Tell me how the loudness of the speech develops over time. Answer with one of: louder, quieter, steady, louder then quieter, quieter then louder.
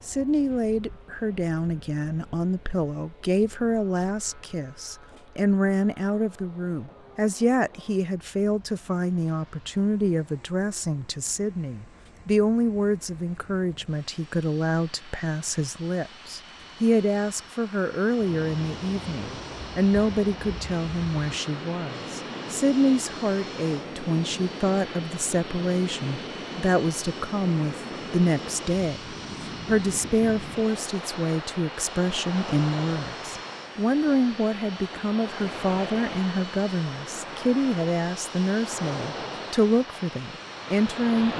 steady.